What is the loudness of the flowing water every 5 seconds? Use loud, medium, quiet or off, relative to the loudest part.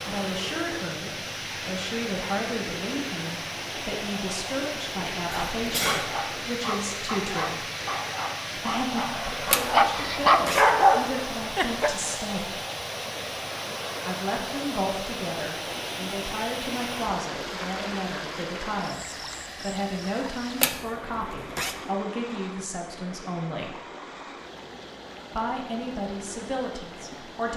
loud, loud, loud, loud, medium, medium.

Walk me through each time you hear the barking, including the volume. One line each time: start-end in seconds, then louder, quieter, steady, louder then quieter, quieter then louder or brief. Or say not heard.
5.2-11.9 louder.